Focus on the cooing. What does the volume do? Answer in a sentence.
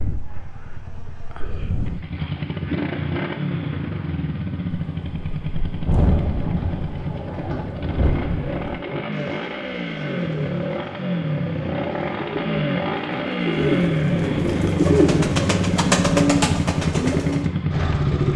The loudness of the cooing goes up.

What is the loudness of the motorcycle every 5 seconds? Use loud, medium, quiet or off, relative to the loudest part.
medium, medium, loud, loud.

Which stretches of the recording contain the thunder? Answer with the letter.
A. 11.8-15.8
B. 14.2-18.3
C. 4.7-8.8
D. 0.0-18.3
C.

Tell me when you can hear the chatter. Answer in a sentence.
You can't hear the chatter here.